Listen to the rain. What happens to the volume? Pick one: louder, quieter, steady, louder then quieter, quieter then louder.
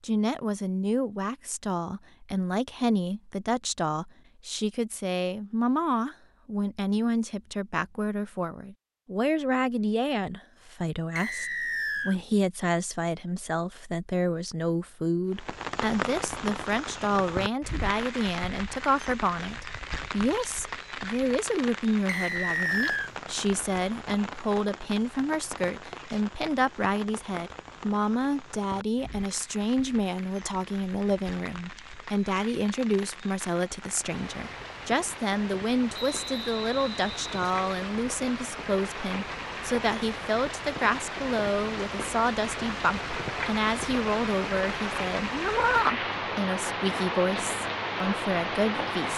quieter then louder.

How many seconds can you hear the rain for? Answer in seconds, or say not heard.
34 s.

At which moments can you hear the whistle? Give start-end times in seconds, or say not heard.
11.2-12.2, 22.1-23.1, 35.9-37.9.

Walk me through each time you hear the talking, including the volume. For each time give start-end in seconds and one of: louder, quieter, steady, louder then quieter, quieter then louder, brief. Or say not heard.
0.0-49.1 steady.